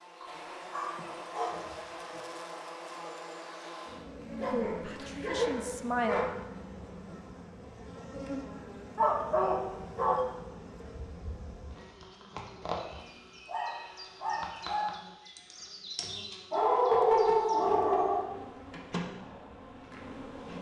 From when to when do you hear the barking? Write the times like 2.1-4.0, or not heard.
0.2-1.8, 4.4-6.3, 8.9-10.2, 13.0-14.9, 16.5-18.3.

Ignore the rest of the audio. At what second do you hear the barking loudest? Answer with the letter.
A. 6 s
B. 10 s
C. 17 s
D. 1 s
C.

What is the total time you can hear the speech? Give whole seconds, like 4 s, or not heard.
2 s.